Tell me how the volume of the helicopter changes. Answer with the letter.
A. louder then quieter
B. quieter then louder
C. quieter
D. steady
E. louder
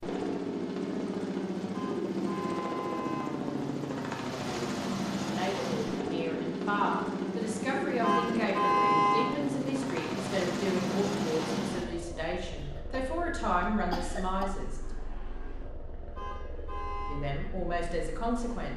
C.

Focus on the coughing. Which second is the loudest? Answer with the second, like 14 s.
14 s.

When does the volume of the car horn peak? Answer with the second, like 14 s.
9 s.